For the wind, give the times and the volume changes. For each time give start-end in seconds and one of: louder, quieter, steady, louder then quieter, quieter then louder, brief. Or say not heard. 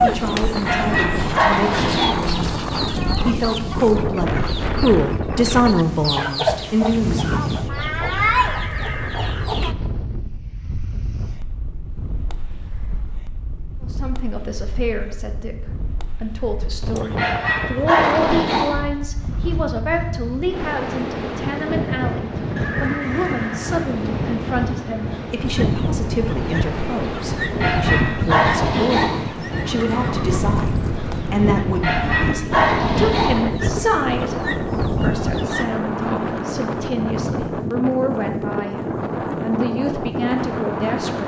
0.0-41.2 quieter then louder.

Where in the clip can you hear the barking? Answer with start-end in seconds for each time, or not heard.
0.7-2.2, 17.1-18.8, 27.6-29.2, 31.8-33.5.